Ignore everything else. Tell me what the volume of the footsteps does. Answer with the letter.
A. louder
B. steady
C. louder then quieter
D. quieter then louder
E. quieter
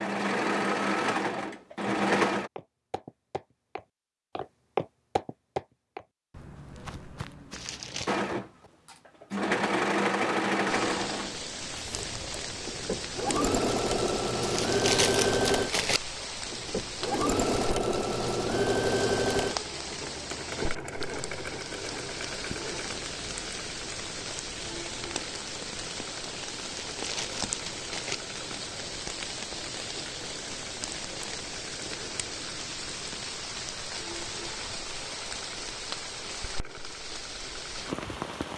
C.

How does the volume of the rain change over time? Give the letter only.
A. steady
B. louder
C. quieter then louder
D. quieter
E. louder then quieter
A.